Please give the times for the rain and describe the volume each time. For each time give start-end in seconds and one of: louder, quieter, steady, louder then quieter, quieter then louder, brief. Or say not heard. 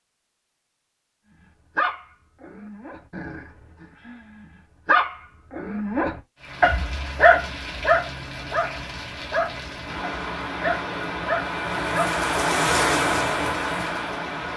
6.3-14.5 louder.